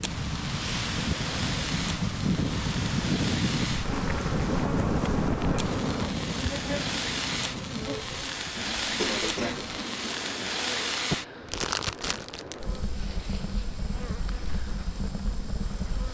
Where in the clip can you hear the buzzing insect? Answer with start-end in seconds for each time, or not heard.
3.8-16.0.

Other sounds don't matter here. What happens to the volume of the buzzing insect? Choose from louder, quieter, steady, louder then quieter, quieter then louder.
quieter.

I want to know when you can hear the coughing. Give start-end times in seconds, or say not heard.
8.6-10.6.